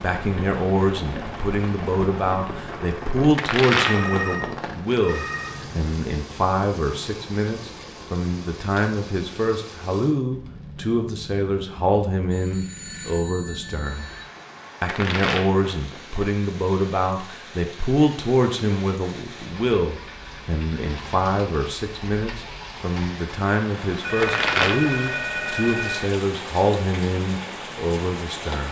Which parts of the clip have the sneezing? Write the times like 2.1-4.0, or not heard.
not heard.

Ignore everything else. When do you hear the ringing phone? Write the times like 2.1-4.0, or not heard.
3.8-5.5, 12.3-14.2, 24.0-26.1.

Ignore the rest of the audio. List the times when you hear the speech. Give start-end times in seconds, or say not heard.
0.0-14.1, 14.8-28.6.